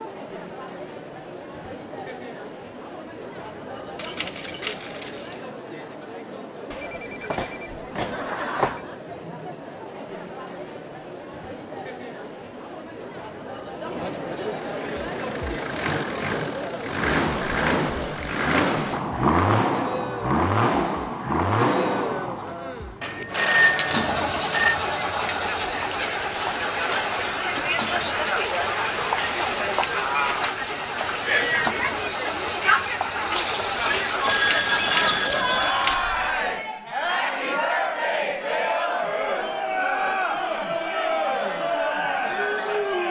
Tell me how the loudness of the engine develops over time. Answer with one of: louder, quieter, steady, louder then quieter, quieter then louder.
quieter.